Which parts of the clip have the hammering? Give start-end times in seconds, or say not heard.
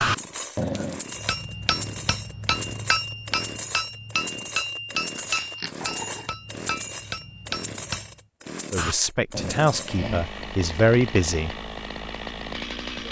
1.1-8.2.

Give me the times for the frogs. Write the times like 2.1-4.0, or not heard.
not heard.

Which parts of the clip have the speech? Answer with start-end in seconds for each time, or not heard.
8.7-11.6.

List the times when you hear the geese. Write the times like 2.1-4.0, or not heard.
not heard.